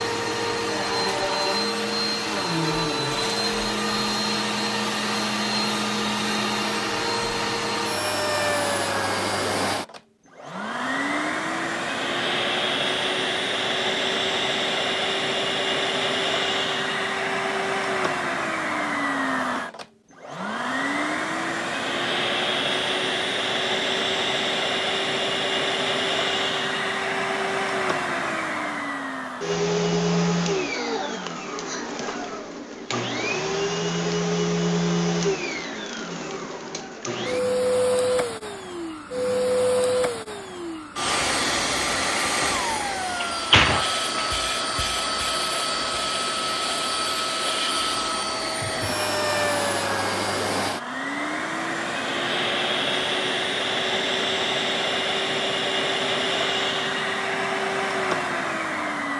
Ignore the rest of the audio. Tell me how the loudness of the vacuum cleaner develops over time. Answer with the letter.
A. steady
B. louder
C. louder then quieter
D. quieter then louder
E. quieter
A.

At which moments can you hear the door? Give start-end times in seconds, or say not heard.
42.7-44.3.